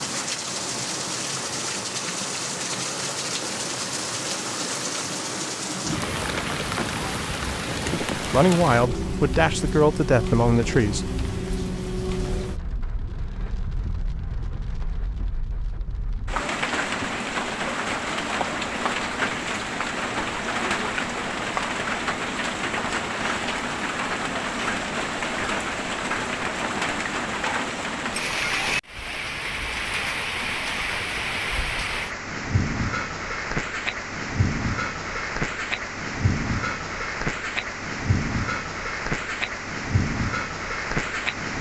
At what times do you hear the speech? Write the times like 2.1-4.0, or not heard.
8.2-11.1.